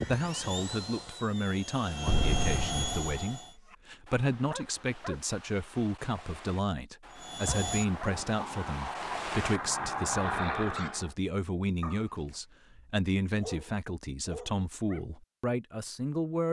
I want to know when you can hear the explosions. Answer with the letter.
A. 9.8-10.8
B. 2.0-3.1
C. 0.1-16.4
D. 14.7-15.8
B.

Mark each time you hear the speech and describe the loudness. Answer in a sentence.
The speech can be heard from 0.1 to 16.4 s, at a steady volume.